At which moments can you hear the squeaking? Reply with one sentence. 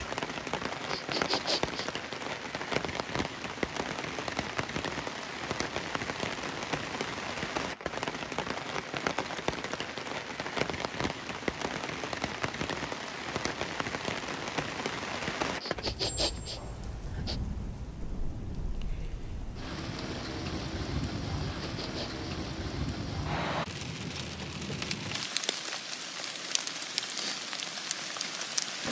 The squeaking can be heard from 16.0 to 16.8 s.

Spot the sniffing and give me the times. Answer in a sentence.
The sniffing can be heard from 0.9 to 1.9 s, from 15.6 to 17.4 s and from 21.6 to 22.2 s.